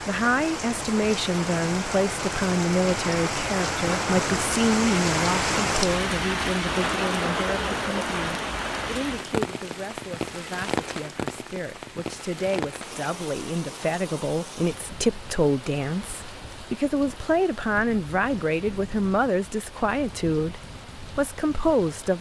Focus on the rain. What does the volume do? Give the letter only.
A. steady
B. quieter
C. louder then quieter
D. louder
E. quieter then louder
B.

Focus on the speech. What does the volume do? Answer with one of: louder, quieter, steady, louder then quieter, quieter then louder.
quieter then louder.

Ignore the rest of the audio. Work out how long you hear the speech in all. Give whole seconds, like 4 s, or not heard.
22 s.